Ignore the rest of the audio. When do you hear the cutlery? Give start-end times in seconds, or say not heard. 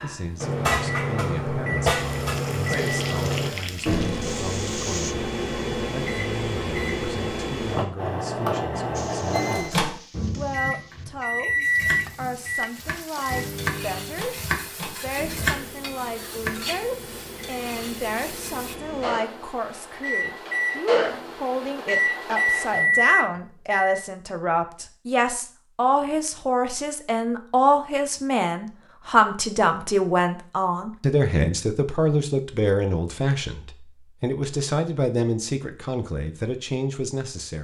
not heard.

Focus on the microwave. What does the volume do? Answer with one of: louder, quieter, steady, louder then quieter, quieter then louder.
quieter then louder.